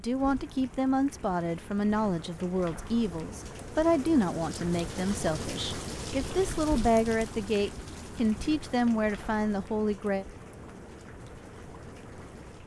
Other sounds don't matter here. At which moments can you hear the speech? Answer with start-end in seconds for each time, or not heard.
0.0-10.2.